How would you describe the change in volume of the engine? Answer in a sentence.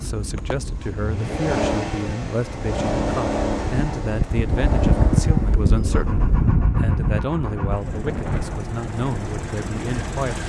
The loudness of the engine goes down.